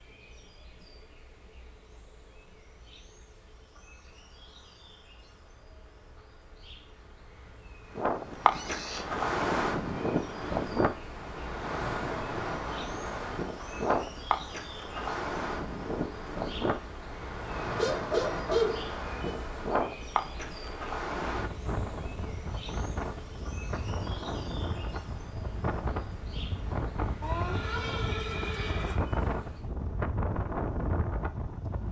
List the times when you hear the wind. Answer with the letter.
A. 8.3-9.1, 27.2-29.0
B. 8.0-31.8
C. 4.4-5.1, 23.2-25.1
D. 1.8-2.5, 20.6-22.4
B.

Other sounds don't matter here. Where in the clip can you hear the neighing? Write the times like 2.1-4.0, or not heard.
8.3-9.1, 27.2-29.0.